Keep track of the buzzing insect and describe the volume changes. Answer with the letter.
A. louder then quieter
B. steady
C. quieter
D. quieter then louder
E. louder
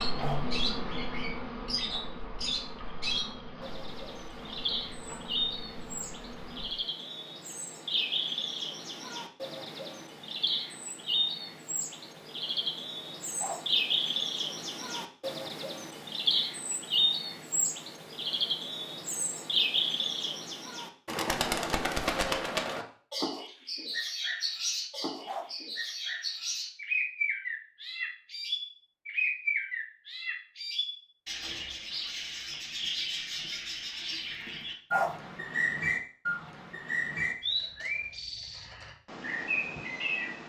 C.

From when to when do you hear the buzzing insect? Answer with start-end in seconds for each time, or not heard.
0.0-6.8.